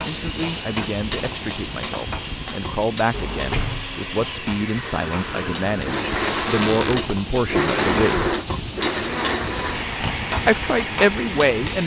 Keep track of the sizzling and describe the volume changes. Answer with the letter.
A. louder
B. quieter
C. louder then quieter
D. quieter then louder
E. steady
D.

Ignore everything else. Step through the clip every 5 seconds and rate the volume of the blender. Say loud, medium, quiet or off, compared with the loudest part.
medium, loud, medium.